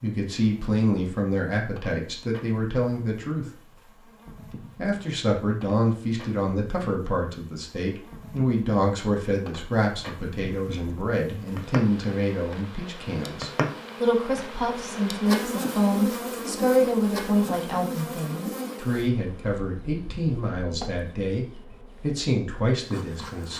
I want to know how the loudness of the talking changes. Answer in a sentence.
The loudness of the talking stays about the same.